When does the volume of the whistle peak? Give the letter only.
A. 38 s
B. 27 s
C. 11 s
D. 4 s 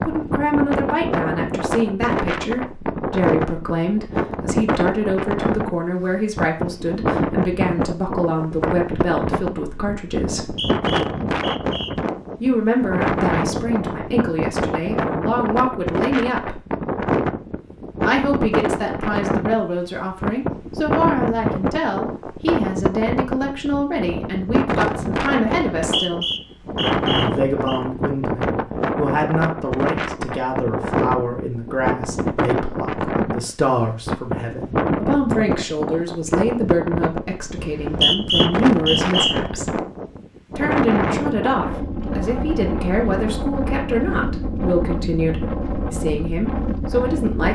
A.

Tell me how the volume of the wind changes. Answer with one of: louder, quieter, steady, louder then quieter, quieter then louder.
steady.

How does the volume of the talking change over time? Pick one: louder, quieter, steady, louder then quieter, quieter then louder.
steady.